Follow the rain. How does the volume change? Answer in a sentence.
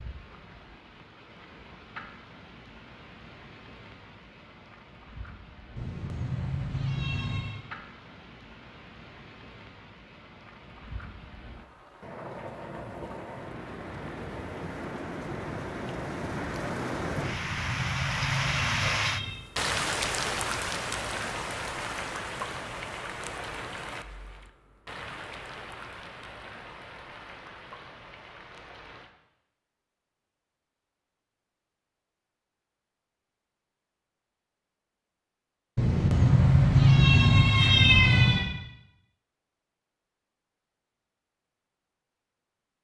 The loudness of the rain goes up, then down.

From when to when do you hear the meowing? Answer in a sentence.
The meowing can be heard from 5.8 to 7.6 s, from 17.2 to 19.4 s and from 35.8 to 38.5 s.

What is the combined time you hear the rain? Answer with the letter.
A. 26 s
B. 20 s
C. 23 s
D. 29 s
D.